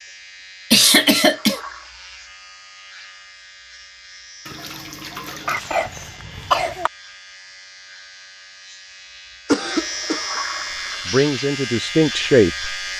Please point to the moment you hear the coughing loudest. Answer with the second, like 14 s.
1 s.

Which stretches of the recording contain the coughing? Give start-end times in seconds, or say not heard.
0.7-1.6, 5.5-6.9, 9.4-10.4.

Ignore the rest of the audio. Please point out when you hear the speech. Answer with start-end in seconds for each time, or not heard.
11.1-12.8.